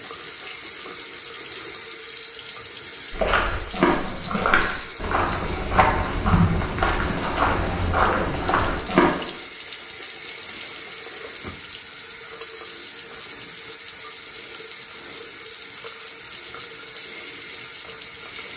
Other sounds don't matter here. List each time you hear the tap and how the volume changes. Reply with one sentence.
The tap can be heard from 0.0 to 18.5 s, at a steady volume.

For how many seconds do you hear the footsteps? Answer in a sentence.
You can hear the footsteps for 6 seconds altogether.